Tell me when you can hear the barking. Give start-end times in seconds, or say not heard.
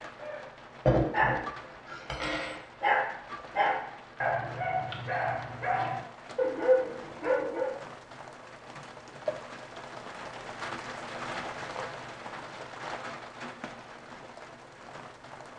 0.2-7.8.